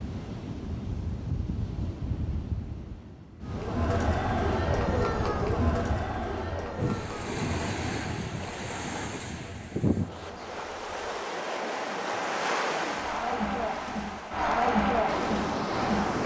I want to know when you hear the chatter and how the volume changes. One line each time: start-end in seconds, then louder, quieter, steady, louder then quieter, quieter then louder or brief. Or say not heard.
3.5-16.2 quieter then louder.